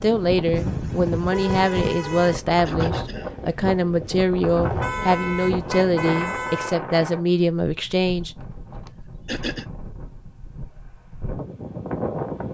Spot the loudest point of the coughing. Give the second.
9 s.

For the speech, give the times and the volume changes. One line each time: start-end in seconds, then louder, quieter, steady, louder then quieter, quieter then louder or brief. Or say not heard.
0.0-8.3 steady.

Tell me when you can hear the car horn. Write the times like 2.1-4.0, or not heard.
0.6-2.4, 4.6-6.8, 8.4-9.0.